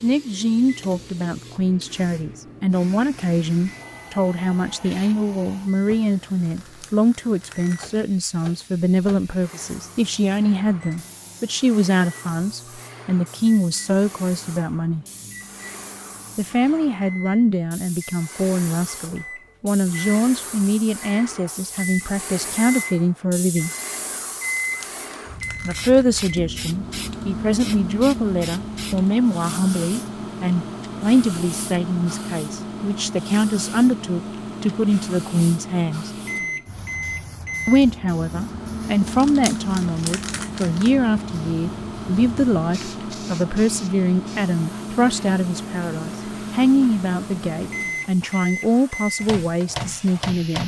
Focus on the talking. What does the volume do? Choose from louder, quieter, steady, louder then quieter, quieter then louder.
steady.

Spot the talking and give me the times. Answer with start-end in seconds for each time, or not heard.
0.0-15.1, 16.4-23.7, 25.6-36.1, 37.6-50.6.